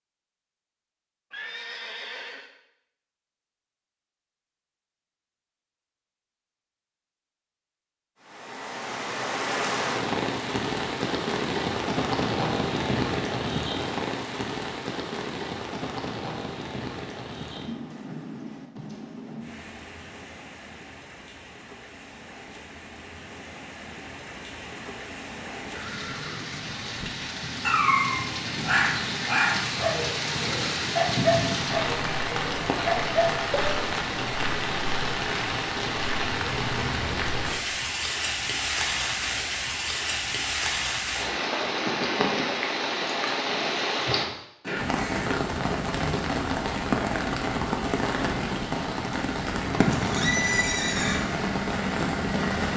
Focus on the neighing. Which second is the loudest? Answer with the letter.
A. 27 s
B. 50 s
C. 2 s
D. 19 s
B.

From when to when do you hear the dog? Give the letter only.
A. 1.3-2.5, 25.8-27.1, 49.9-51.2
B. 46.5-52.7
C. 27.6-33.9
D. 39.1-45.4
C.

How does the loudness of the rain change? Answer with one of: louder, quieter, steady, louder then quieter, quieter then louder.
quieter then louder.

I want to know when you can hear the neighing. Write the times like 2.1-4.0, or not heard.
1.3-2.5, 25.8-27.1, 49.9-51.2.